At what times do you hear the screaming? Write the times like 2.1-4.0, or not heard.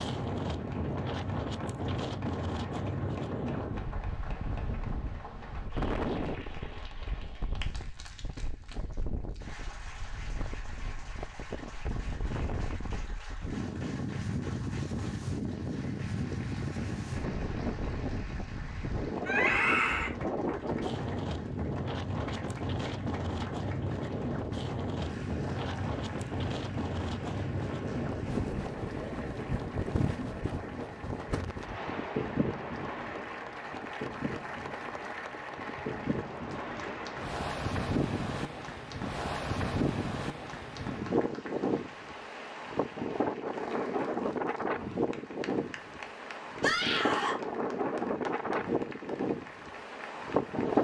19.2-20.1, 46.6-47.4.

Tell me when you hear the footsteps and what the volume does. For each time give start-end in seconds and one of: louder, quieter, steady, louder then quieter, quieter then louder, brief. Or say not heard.
not heard.